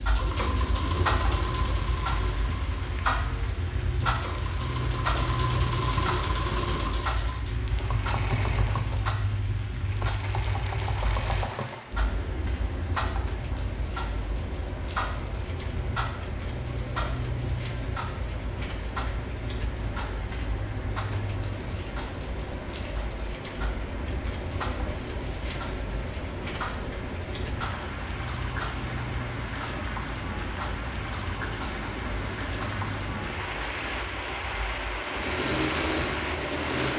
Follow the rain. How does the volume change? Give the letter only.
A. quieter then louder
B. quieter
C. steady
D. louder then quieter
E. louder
E.